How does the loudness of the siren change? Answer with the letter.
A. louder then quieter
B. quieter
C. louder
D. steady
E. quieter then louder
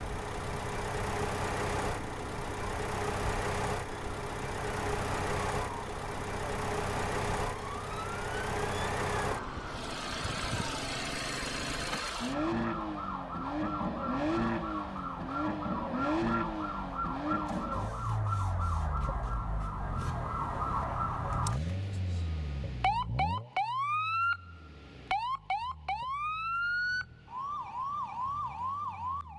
C.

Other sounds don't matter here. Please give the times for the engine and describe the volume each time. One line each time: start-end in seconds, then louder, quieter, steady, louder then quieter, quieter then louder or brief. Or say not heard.
0.0-29.3 quieter.